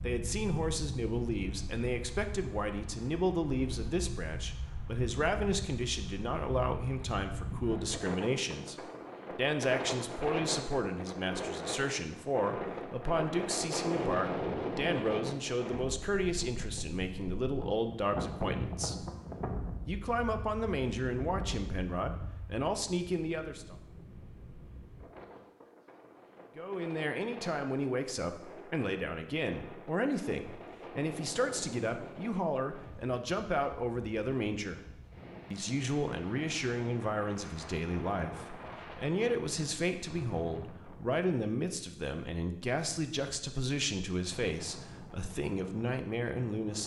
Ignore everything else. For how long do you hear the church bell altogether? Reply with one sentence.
You can't hear the church bell here.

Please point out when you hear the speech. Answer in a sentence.
The speech can be heard from 0.0 to 19.1 s, from 19.9 to 23.8 s, from 26.6 to 34.8 s and from 35.5 to 46.8 s.